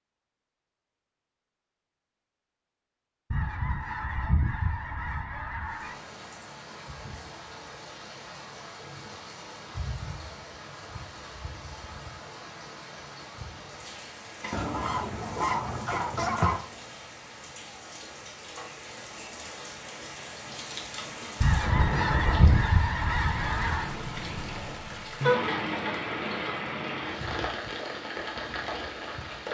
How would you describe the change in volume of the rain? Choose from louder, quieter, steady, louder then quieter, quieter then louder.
louder.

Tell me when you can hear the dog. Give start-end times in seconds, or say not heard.
not heard.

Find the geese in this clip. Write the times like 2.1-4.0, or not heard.
3.3-6.0, 14.5-16.6, 21.4-23.9.